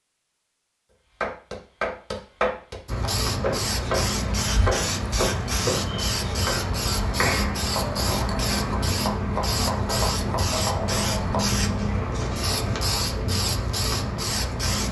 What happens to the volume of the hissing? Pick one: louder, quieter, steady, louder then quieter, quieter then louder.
steady.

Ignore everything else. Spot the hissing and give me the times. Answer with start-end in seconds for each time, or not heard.
2.9-14.8.